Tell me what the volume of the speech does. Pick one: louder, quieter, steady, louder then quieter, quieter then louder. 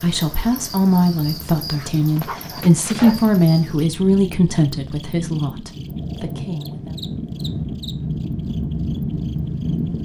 quieter.